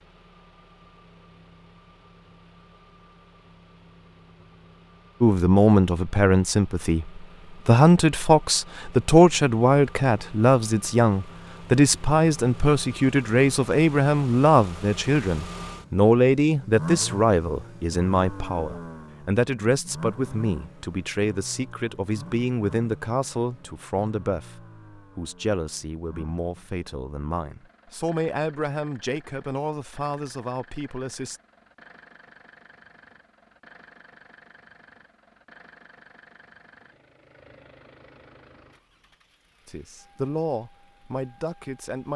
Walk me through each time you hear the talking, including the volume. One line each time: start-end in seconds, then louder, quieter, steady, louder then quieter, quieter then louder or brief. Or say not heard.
5.2-31.4 quieter
39.6-42.1 brief.